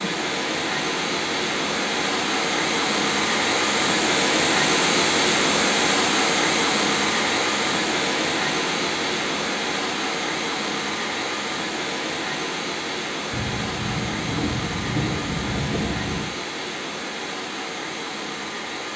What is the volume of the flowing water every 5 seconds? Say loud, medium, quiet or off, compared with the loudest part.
loud, loud, medium, medium.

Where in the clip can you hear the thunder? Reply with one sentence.
You can hear the thunder from 13.3 to 16.3 s.